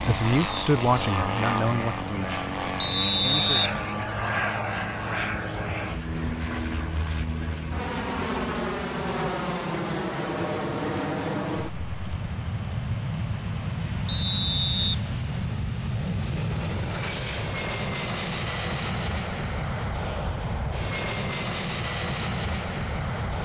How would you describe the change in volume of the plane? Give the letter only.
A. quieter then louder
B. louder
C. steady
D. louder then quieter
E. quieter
C.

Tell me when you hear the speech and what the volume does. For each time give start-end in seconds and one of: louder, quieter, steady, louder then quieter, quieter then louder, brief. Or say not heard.
0.0-4.5 quieter.